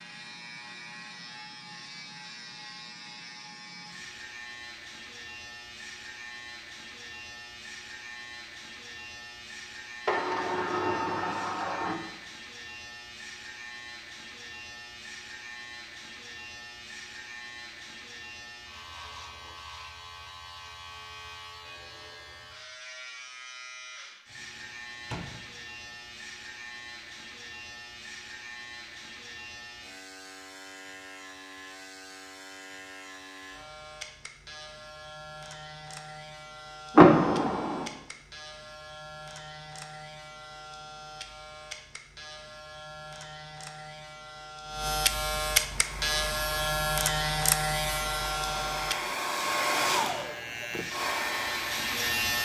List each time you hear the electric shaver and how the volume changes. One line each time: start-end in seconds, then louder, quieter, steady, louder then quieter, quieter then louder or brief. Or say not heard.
0.0-52.4 louder.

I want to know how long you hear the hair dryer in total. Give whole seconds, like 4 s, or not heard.
7 s.